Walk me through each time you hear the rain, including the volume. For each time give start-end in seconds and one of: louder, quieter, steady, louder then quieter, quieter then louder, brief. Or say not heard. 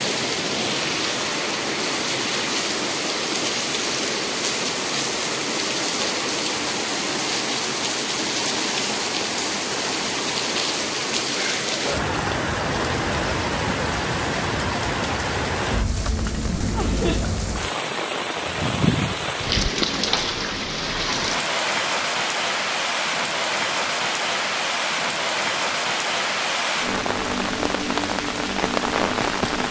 0.0-29.6 steady.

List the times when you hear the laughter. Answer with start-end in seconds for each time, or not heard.
16.3-17.2.